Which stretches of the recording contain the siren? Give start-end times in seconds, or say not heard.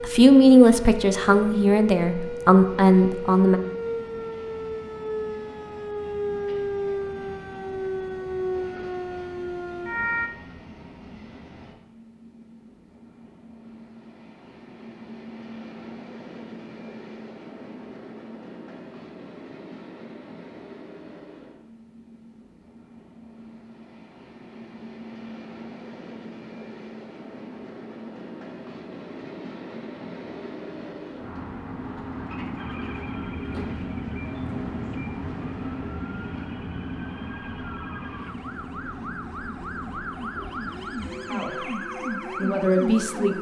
0.0-10.3, 32.5-43.3.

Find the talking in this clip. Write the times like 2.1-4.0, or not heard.
0.0-3.6, 41.2-41.7, 42.4-43.3.